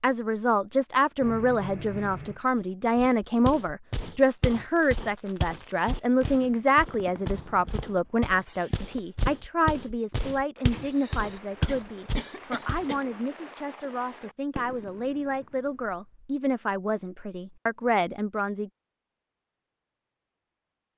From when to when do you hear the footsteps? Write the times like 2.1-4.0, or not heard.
2.5-12.9.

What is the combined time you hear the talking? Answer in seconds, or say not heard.
19 s.